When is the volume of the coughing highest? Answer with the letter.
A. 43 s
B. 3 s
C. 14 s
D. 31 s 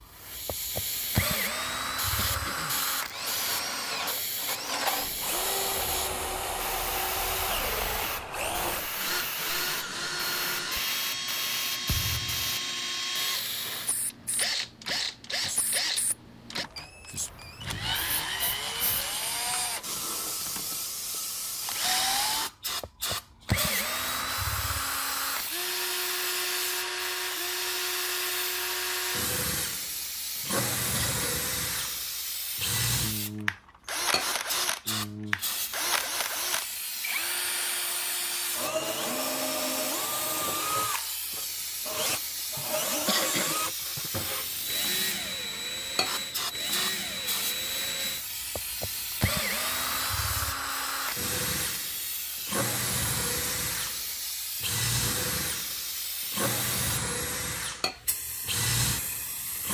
A.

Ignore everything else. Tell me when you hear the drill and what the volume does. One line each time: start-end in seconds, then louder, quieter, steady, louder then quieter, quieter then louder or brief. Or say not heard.
0.0-59.6 steady.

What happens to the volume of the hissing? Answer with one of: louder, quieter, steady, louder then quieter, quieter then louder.
steady.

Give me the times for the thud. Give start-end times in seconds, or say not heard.
11.8-12.6.